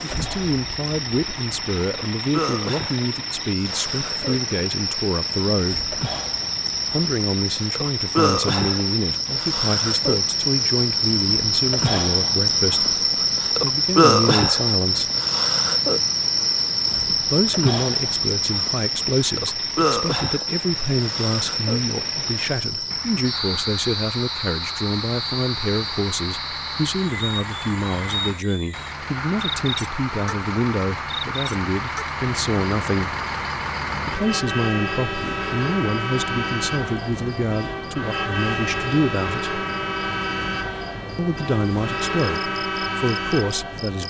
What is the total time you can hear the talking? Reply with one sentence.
You can hear the talking for 38 seconds altogether.